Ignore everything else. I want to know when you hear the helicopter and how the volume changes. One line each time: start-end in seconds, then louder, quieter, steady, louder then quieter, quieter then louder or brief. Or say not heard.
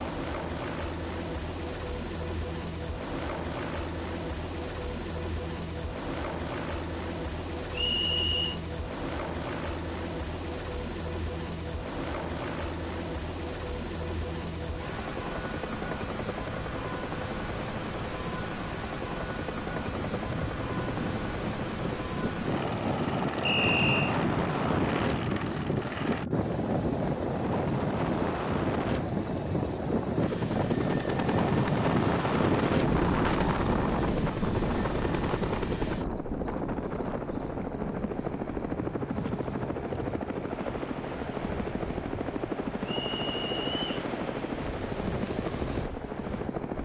0.0-46.8 steady.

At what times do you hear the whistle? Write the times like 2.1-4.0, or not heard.
7.7-8.6, 23.4-24.1, 42.9-44.0.